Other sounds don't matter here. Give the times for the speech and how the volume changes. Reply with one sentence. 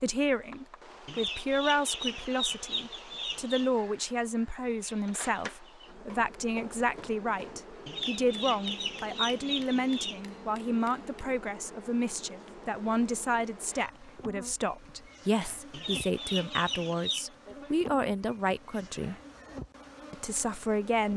The speech can be heard from 0.0 to 19.1 s, at a steady volume; and briefly from 20.1 to 21.1 s.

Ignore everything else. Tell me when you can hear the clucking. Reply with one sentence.
The clucking can be heard from 1.1 to 3.7 s, from 7.8 to 10.2 s and from 15.7 to 17.2 s.